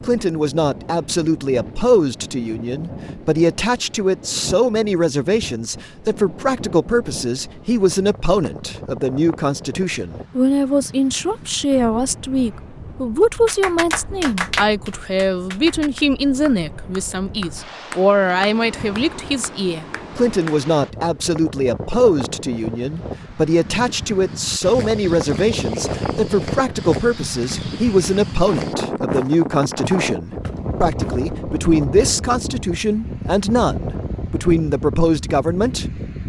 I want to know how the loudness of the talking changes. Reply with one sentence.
The loudness of the talking stays about the same.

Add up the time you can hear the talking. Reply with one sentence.
You can hear the talking for 36 seconds altogether.